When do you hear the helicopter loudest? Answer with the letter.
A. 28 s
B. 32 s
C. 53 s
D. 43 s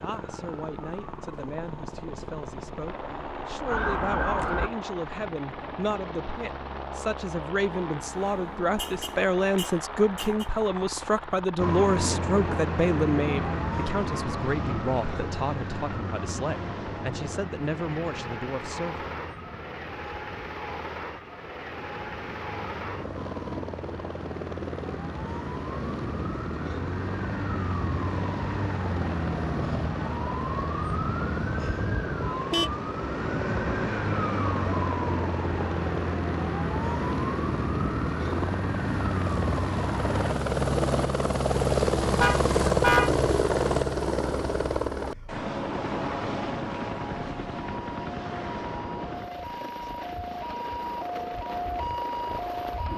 D.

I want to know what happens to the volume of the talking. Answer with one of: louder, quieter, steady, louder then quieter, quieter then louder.
louder then quieter.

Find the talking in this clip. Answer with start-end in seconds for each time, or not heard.
0.0-19.1.